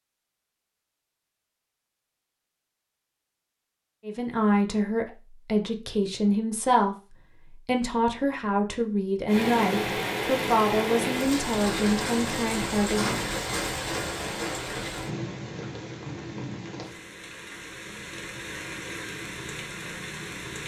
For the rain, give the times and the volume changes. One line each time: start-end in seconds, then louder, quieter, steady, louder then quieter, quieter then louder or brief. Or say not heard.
9.2-20.6 quieter.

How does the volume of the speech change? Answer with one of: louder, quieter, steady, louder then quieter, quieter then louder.
steady.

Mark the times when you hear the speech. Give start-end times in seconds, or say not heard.
4.0-13.2.